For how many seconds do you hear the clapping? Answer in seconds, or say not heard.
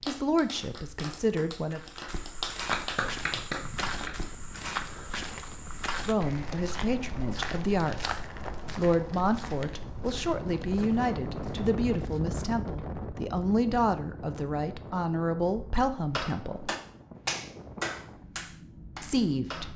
8 s.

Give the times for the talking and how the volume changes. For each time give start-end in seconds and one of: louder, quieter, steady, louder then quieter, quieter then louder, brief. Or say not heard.
0.0-1.8 brief
6.0-16.7 steady
19.0-19.7 brief.